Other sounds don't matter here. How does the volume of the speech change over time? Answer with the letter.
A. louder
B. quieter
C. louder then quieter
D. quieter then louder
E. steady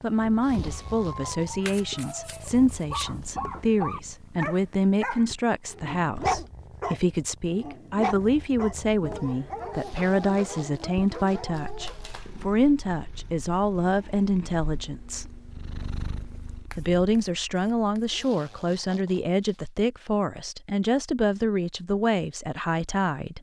E.